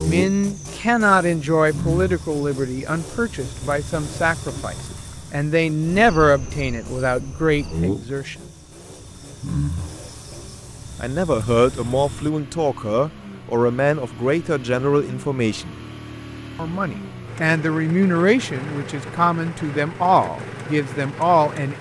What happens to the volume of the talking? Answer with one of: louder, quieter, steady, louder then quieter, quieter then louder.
steady.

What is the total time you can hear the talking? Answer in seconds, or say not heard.
18 s.